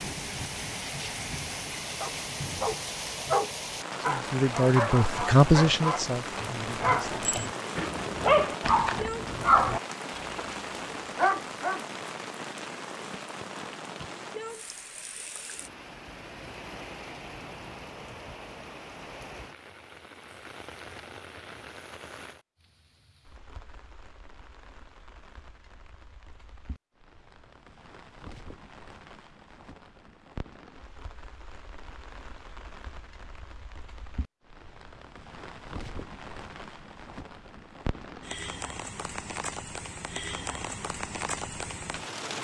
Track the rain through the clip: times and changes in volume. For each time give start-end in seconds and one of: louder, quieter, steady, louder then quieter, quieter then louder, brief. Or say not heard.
0.0-42.3 quieter then louder.